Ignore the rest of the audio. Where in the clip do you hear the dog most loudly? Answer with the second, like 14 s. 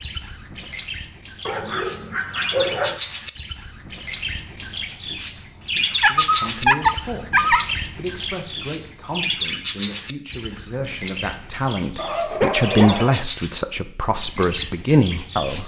7 s.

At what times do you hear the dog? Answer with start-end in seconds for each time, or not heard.
1.4-3.0, 6.0-7.7, 11.9-13.2.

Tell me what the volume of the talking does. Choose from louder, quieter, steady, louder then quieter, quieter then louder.
louder.